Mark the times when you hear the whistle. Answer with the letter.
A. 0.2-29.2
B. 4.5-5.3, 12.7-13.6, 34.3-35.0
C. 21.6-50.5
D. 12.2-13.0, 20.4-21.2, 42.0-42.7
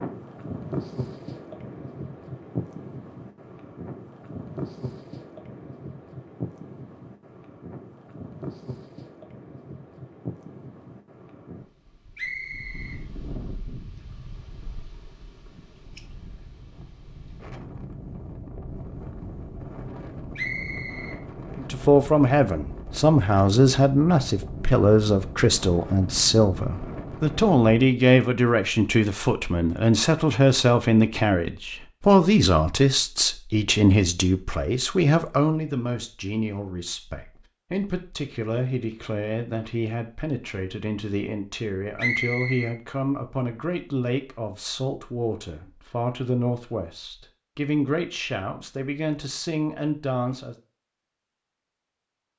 D.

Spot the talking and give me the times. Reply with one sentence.
The talking can be heard from 21.6 to 50.5 s.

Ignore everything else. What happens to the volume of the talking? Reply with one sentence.
The loudness of the talking goes down.